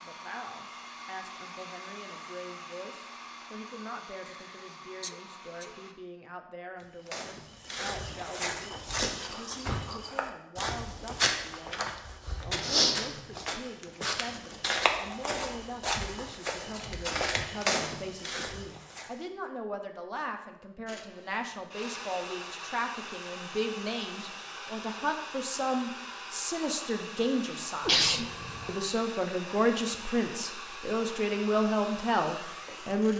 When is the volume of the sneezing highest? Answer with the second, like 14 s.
28 s.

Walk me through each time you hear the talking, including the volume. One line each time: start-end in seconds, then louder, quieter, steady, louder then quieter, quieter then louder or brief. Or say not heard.
0.0-33.1 louder.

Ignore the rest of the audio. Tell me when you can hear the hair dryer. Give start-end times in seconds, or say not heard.
0.0-6.0, 20.9-33.1.